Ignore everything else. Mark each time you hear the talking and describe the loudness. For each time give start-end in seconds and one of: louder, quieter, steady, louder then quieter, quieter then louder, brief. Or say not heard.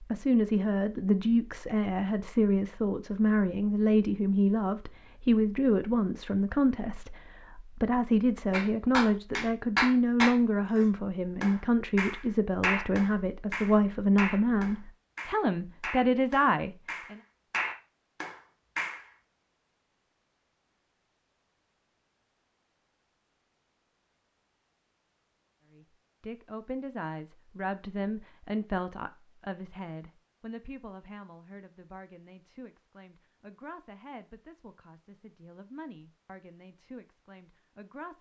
0.0-17.2 steady
25.7-38.1 quieter.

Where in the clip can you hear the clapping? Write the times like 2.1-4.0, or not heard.
8.5-19.0.